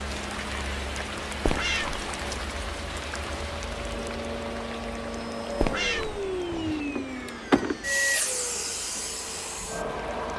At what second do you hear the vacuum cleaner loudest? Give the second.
8 s.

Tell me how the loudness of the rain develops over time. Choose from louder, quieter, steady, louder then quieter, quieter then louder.
quieter.